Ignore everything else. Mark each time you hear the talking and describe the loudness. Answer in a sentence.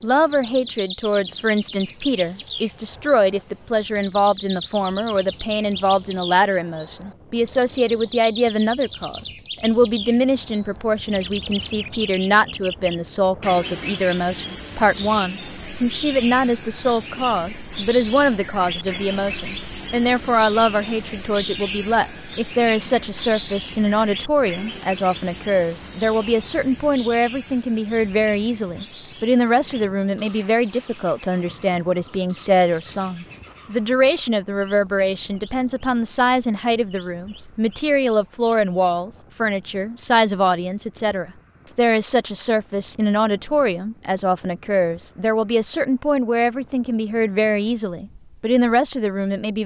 The talking can be heard from 0.0 to 49.6 s, at a steady volume.